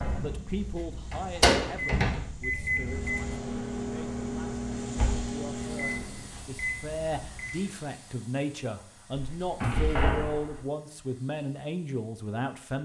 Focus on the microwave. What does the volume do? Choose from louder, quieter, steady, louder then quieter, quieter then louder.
quieter.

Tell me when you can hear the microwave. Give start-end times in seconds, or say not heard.
0.0-7.7.